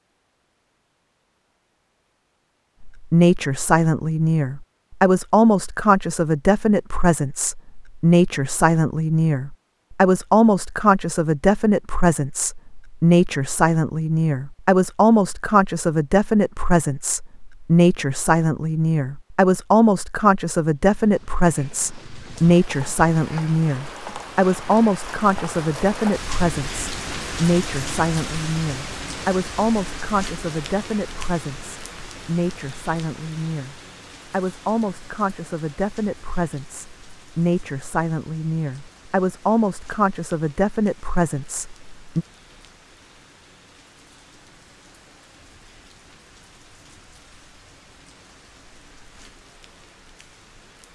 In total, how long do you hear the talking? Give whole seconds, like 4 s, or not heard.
39 s.